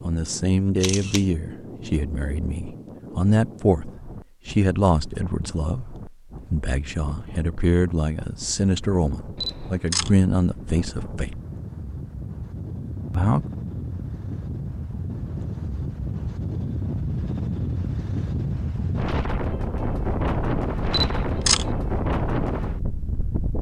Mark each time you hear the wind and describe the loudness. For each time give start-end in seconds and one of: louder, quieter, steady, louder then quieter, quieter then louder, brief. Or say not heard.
0.0-23.5 louder.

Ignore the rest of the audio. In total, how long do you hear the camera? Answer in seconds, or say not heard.
2 s.